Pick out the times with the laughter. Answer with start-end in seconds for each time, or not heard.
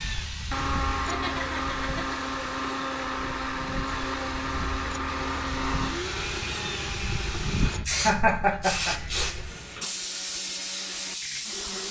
0.9-2.2, 8.0-8.9.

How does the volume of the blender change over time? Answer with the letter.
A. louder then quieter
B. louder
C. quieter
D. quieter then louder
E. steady
C.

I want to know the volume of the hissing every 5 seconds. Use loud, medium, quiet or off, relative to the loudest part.
medium, loud, loud.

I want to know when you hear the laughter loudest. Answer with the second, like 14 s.
8 s.